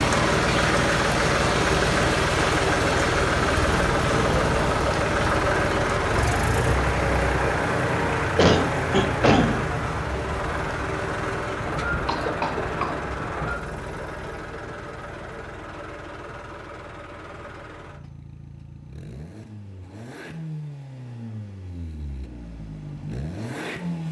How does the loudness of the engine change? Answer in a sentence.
The loudness of the engine goes down.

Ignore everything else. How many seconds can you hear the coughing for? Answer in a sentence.
The coughing can be heard for 2 seconds in total.